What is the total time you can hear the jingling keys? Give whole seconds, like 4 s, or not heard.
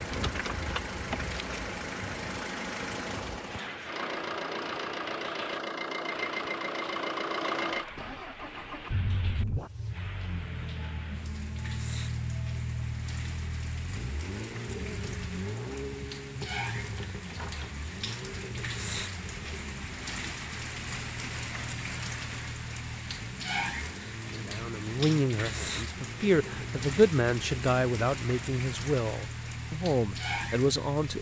3 s.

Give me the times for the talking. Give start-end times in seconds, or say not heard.
24.4-31.1.